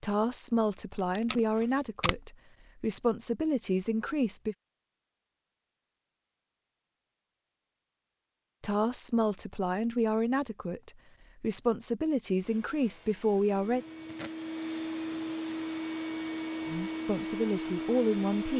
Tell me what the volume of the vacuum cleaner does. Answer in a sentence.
The volume of the vacuum cleaner goes up.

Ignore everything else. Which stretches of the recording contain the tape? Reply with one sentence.
You can hear the tape from 1.1 to 2.2 s and from 13.8 to 14.6 s.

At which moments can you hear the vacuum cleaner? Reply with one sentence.
The vacuum cleaner can be heard from 12.4 to 18.5 s.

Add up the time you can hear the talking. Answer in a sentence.
You can hear the talking for 12 seconds altogether.